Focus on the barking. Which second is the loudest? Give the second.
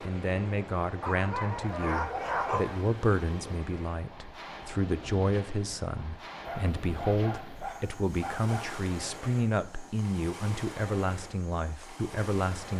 2 s.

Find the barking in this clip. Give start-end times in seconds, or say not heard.
1.0-2.9, 6.4-8.8.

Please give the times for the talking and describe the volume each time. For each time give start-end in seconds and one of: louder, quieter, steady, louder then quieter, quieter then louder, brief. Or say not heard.
0.0-12.7 steady.